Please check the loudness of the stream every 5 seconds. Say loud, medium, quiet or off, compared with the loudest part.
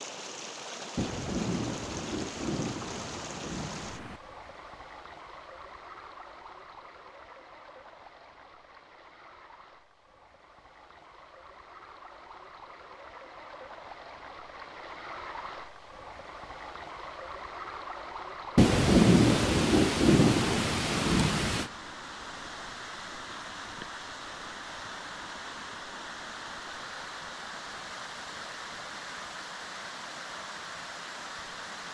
loud, medium, medium, loud, loud, loud, loud.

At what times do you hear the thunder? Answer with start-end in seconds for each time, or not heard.
0.9-4.2, 18.6-21.7.